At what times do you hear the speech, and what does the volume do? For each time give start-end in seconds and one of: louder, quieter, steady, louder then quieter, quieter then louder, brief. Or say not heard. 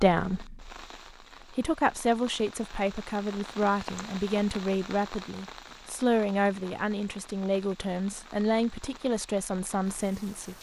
0.0-0.8 brief
1.5-10.5 steady.